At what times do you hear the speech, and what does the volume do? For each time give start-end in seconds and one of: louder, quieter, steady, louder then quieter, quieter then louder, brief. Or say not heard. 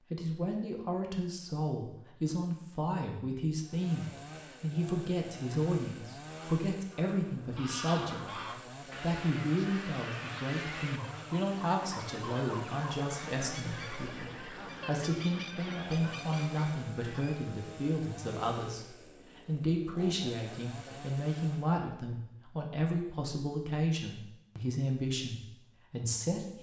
0.1-26.5 steady.